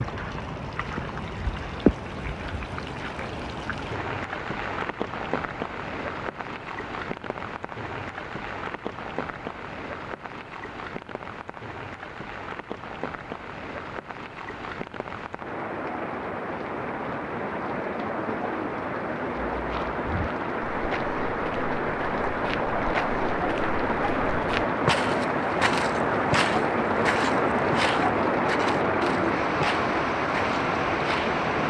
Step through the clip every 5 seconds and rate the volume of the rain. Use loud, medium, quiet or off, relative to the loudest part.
medium, medium, quiet, medium, loud, loud, loud.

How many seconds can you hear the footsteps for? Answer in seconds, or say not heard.
12 s.